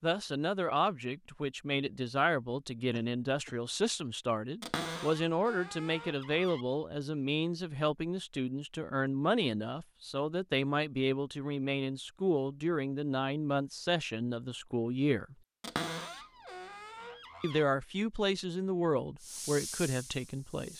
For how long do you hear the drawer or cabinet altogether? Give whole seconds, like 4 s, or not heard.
4 s.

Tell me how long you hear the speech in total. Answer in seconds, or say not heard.
19 s.